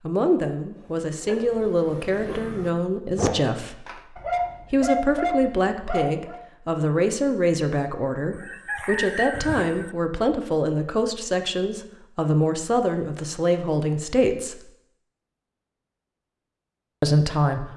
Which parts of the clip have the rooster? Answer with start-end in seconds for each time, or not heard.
8.3-9.9.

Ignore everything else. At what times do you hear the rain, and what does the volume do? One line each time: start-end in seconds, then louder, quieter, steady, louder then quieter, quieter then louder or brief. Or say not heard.
not heard.